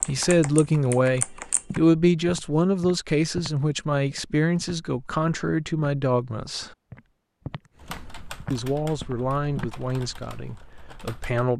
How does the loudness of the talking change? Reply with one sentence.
The loudness of the talking goes down.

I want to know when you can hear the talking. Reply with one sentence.
The talking can be heard from 0.1 to 6.8 s and from 8.5 to 11.5 s.